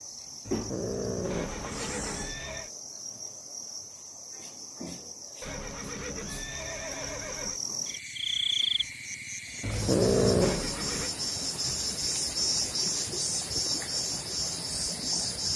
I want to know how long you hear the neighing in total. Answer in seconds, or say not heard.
4 s.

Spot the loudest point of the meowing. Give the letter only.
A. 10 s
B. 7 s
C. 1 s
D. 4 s
A.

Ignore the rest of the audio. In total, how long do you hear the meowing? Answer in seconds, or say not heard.
3 s.